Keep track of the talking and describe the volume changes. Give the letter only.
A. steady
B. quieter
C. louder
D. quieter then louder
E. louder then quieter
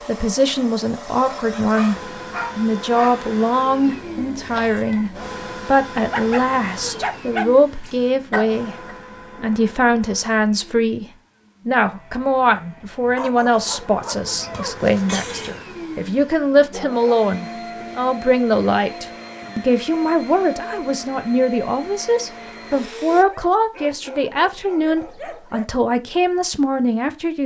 A.